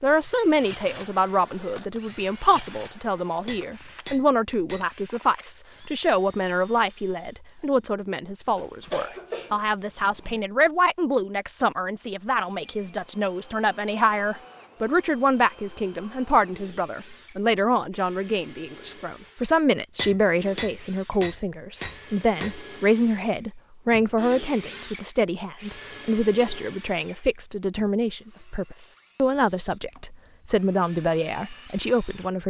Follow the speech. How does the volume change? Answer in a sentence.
The loudness of the speech stays about the same.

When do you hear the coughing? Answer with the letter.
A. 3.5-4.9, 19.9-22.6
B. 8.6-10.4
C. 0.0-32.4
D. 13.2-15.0
B.